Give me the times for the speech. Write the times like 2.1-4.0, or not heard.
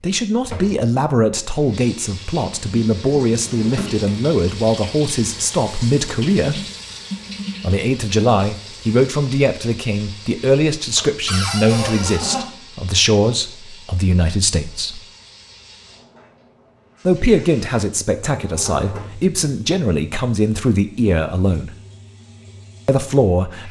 0.0-6.7, 7.6-15.0, 17.1-21.8, 22.9-23.6.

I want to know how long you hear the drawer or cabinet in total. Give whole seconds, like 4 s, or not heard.
3 s.